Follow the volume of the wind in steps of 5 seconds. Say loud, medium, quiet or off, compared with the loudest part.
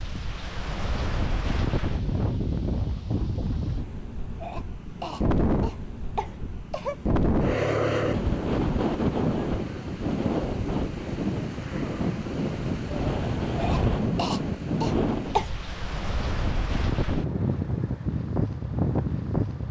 medium, loud, loud, loud.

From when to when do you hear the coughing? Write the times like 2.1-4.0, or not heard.
4.4-7.0, 13.6-15.6.